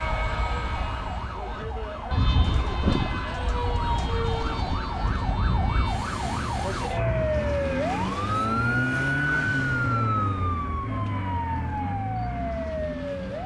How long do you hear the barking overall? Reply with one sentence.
The barking can't be heard in this clip.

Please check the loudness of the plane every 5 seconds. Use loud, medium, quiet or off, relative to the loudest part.
loud, loud, medium.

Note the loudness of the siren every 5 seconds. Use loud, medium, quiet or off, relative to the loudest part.
medium, loud, loud.